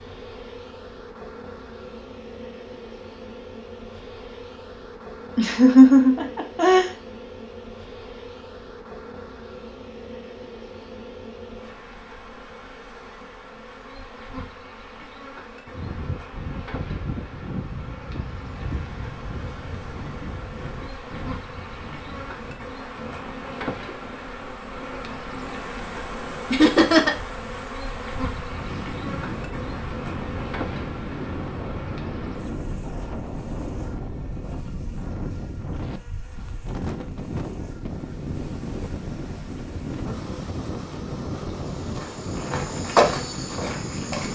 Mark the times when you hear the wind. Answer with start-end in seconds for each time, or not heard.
15.7-44.3.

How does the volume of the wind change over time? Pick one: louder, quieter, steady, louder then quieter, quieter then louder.
quieter then louder.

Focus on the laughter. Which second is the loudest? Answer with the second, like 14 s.
6 s.